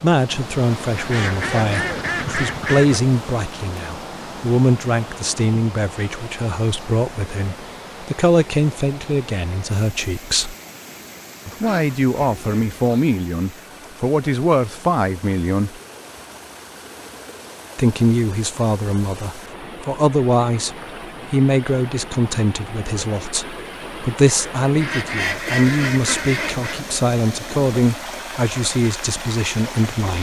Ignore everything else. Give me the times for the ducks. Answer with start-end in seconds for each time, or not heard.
0.9-3.0, 11.4-13.1, 24.8-26.9.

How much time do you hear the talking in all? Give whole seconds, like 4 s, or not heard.
27 s.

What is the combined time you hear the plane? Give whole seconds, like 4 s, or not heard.
not heard.